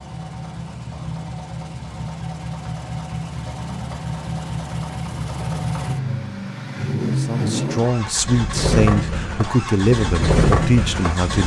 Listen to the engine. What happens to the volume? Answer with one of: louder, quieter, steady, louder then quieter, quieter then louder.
louder.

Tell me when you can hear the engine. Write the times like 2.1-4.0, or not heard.
0.0-11.4.